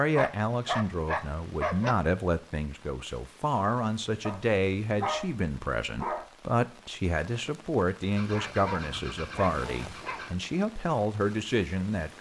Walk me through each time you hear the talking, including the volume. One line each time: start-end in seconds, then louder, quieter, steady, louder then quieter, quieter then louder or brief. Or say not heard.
0.0-12.1 steady.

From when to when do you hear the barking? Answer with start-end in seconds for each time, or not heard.
0.1-1.9, 4.2-6.2, 8.3-10.3.